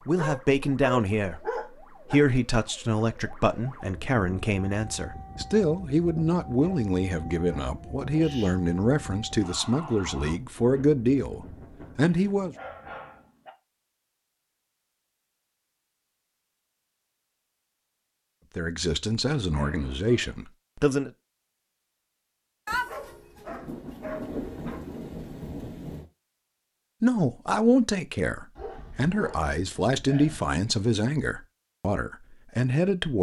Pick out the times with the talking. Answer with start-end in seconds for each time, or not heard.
0.1-12.6, 18.6-21.1, 27.0-33.1.